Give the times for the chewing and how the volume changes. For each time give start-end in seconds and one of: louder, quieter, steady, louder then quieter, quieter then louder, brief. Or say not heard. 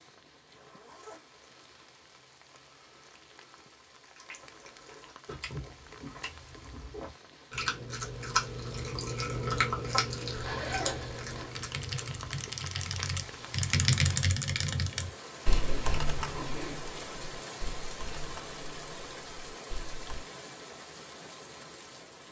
4.2-12.6 louder then quieter.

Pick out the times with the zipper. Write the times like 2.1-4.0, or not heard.
0.6-1.5, 10.3-11.6, 15.6-16.8.